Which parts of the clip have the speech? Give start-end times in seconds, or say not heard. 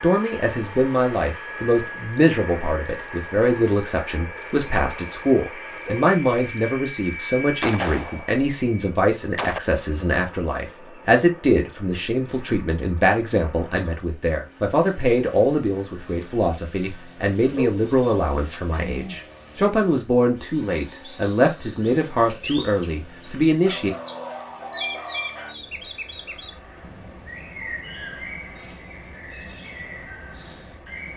0.0-23.9.